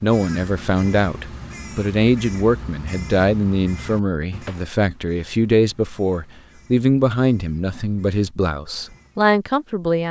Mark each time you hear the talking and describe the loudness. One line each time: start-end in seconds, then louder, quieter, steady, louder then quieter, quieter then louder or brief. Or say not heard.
0.0-10.0 steady.